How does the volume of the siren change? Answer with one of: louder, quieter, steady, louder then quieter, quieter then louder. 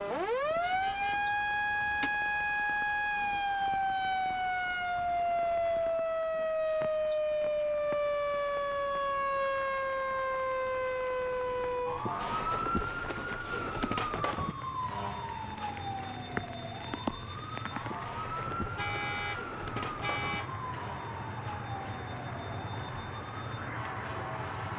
quieter.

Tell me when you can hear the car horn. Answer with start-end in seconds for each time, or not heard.
0.6-2.1, 18.6-20.5.